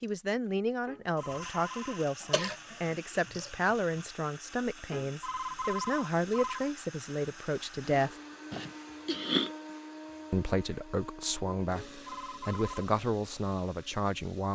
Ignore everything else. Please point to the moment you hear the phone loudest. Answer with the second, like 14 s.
6 s.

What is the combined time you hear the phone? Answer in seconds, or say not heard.
5 s.